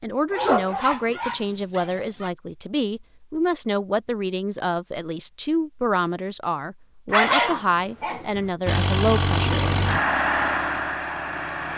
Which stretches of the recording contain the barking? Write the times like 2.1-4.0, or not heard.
0.3-2.3, 7.1-8.5.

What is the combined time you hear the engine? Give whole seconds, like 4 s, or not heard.
3 s.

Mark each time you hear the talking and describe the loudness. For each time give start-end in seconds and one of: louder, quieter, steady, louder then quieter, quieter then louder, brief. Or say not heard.
0.0-10.0 steady.